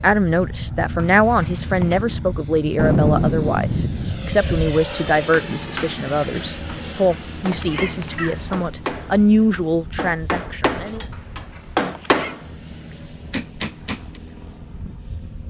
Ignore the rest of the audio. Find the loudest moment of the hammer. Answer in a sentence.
The loudest moment of the hammer is at 12 seconds.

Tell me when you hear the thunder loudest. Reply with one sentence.
The loudest moment of the thunder is at 3 seconds.